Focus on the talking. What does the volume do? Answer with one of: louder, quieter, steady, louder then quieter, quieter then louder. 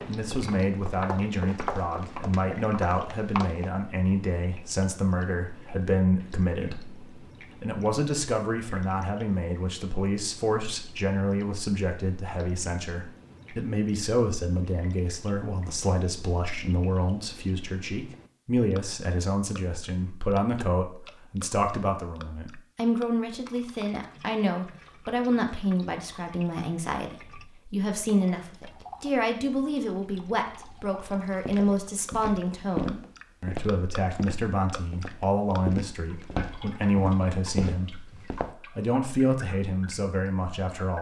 steady.